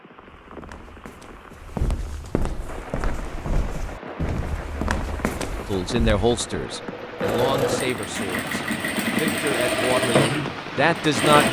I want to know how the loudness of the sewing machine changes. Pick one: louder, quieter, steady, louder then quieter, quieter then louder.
louder.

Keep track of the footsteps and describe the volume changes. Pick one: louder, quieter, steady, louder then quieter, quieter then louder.
louder.